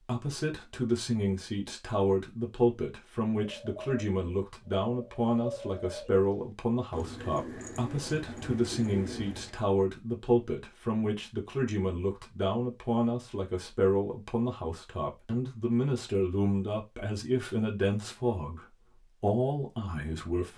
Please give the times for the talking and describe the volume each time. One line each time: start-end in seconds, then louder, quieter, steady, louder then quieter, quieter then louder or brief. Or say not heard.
0.0-20.5 steady.